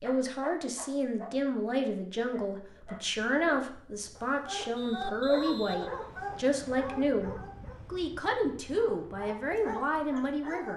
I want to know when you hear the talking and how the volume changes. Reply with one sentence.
The talking can be heard from 0.0 to 10.7 s, at a steady volume.